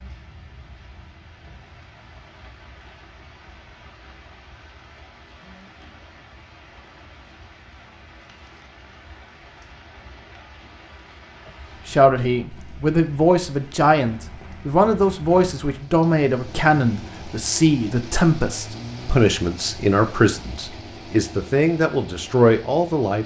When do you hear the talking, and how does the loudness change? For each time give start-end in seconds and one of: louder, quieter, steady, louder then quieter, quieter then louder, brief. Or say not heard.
11.8-23.2 steady.